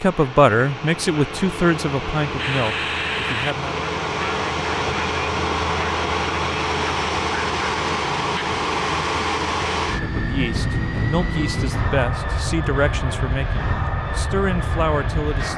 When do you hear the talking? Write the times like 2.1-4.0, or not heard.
0.0-3.9, 10.0-15.5.